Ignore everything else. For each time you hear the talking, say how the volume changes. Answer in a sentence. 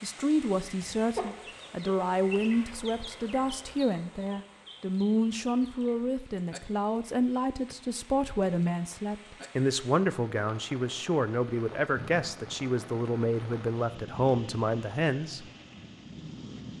The talking can be heard from 0.0 to 15.4 s, at a steady volume.